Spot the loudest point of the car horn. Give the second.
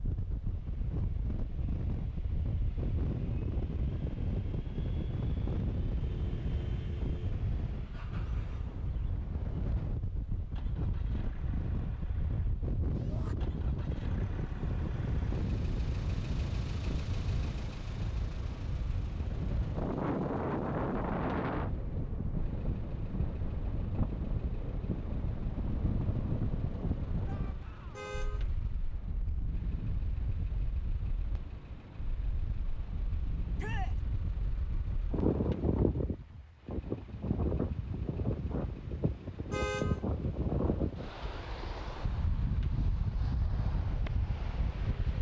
40 s.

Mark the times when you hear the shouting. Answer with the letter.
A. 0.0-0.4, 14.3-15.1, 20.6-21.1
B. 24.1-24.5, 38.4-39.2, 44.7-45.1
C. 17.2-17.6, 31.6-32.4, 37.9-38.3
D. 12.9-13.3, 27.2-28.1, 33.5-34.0
D.